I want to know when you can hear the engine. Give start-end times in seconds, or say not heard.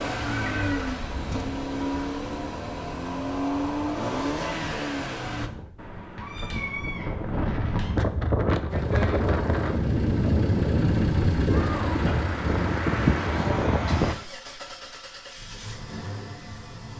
0.0-5.5, 8.7-16.9.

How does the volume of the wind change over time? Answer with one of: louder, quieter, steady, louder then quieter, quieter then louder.
louder.